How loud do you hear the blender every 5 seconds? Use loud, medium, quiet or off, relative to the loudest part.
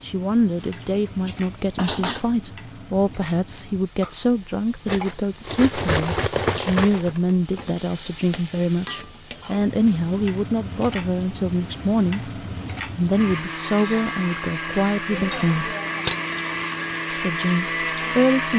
off, off, loud, loud.